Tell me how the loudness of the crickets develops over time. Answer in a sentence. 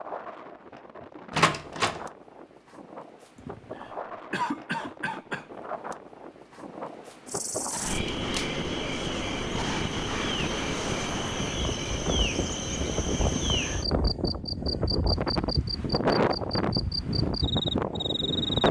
The volume of the crickets stays about the same.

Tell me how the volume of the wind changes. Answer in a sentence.
The volume of the wind goes up.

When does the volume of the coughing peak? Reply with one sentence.
The volume of the coughing peaks at 5 seconds.